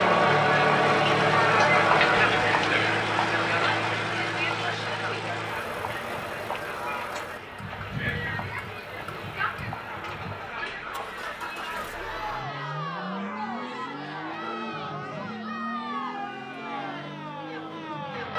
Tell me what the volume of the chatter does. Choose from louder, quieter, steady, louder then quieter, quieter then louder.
quieter.